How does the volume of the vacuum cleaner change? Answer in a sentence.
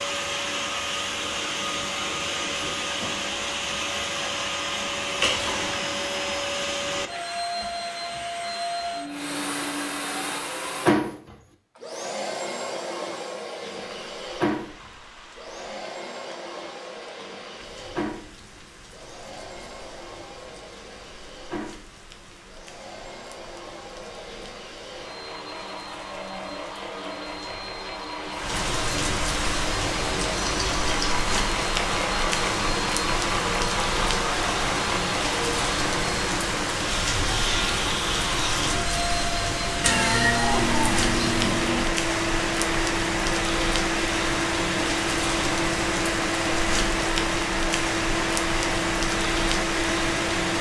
The loudness of the vacuum cleaner goes down, then up.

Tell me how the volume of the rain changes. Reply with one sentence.
The volume of the rain goes up.